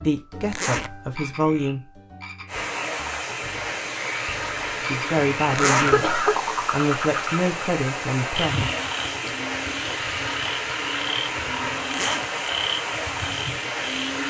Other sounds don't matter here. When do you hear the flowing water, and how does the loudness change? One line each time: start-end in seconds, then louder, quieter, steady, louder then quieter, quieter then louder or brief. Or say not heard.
2.5-14.2 steady.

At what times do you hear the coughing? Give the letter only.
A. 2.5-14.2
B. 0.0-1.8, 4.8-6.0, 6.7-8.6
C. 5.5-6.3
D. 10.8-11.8
C.